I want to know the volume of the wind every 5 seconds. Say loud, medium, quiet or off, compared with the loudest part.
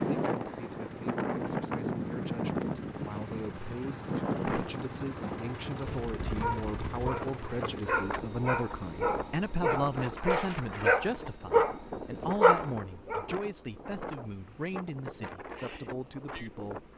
loud, medium, medium, medium.